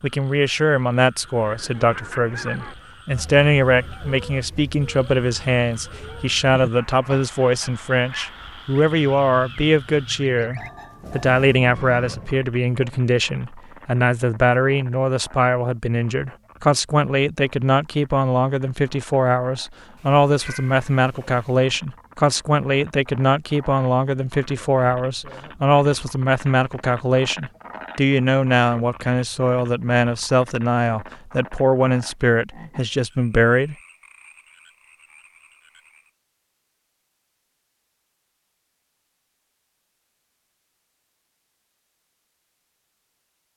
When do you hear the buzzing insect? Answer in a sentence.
The buzzing insect can't be heard in this clip.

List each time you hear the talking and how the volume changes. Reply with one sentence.
The talking can be heard from 0.0 to 33.8 s, at a steady volume.